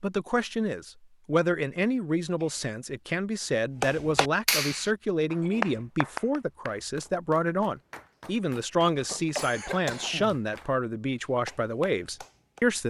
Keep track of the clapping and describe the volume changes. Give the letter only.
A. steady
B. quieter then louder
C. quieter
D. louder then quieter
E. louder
C.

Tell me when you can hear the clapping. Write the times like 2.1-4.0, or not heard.
3.8-12.7.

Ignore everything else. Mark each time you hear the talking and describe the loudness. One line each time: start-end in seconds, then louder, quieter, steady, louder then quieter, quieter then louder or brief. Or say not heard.
0.0-12.8 steady.